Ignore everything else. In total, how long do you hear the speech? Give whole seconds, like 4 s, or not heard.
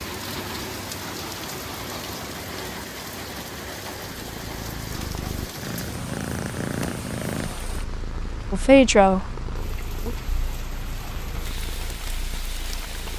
2 s.